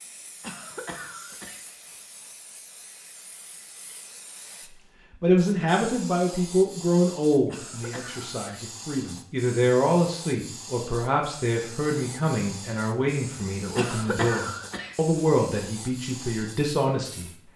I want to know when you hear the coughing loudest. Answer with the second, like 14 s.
14 s.